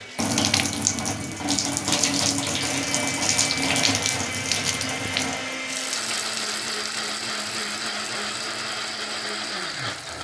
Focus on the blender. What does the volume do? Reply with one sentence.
The loudness of the blender goes up.